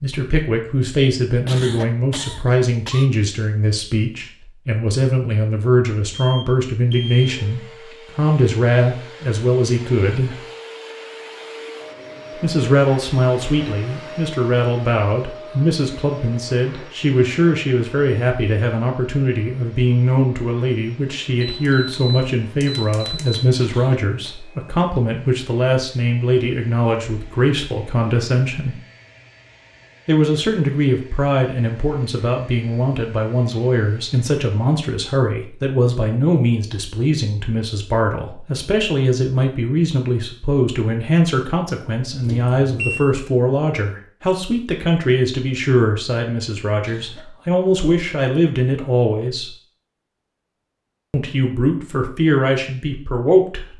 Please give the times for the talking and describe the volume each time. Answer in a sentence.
The talking can be heard from 0.0 to 10.4 s, at a steady volume; from 12.3 to 28.8 s, at a steady volume; from 30.1 to 49.5 s, at a steady volume; and briefly from 51.1 to 53.7 s.